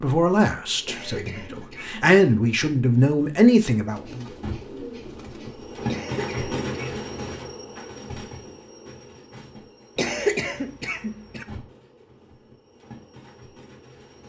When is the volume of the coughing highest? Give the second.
10 s.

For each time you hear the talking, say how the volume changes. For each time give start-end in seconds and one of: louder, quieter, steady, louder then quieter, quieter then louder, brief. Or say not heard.
0.0-4.2 quieter then louder.